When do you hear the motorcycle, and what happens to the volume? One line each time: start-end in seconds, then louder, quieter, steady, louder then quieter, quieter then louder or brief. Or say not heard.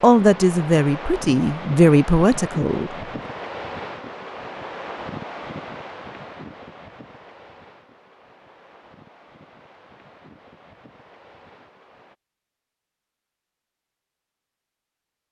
not heard.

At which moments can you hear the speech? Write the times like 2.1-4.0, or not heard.
0.0-2.9.